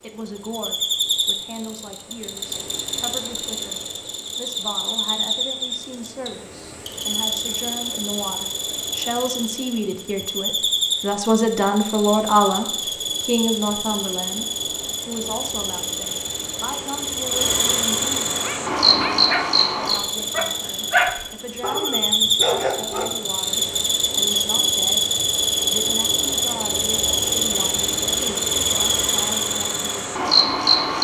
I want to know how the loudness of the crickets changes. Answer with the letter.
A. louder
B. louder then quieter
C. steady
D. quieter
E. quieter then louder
A.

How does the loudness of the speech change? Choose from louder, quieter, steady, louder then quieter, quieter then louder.
louder then quieter.